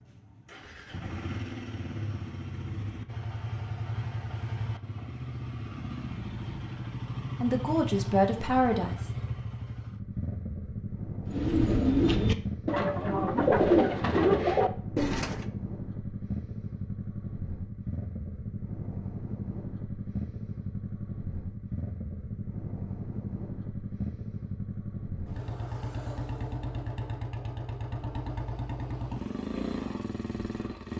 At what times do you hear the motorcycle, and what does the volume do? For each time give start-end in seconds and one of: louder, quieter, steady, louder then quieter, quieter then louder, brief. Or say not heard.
0.0-30.9 steady.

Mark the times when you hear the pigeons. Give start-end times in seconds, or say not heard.
11.2-15.4.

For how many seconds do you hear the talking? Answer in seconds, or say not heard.
2 s.